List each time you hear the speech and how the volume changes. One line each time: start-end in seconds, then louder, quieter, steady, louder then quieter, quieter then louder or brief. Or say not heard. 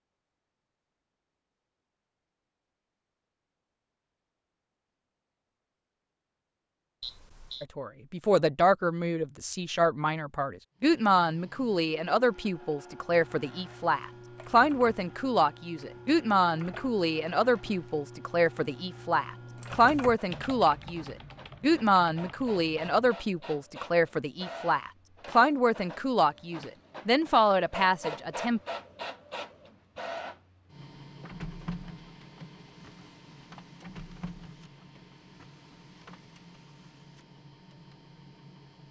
7.6-28.6 steady.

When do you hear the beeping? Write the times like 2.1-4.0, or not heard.
7.0-7.7.